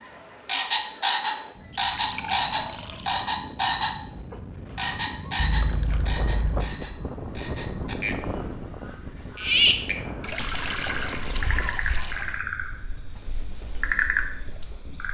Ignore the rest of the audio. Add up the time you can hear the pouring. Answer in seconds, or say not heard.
5 s.